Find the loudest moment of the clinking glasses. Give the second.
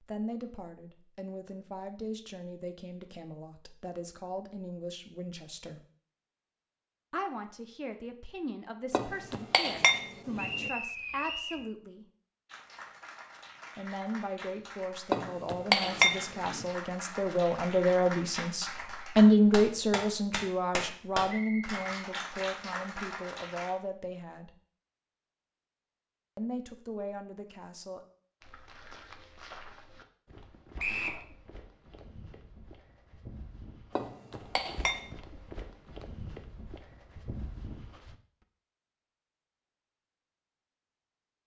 16 s.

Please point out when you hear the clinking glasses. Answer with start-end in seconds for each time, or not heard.
8.9-10.7, 15.1-16.6, 34.0-35.1.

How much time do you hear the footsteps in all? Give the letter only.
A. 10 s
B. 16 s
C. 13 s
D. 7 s
A.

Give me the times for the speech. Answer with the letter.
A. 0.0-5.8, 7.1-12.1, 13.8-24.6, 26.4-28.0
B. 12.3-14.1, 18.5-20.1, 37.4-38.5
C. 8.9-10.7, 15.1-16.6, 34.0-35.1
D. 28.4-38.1
A.